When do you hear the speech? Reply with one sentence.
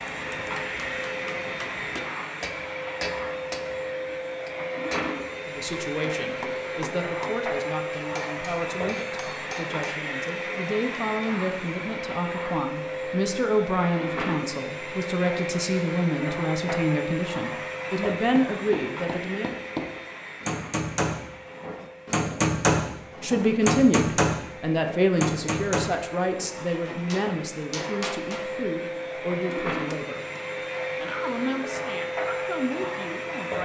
You can hear the speech from 5.5 to 19.6 s, from 23.2 to 30.2 s and from 30.9 to 33.6 s.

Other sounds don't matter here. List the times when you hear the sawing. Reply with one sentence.
You can't hear the sawing here.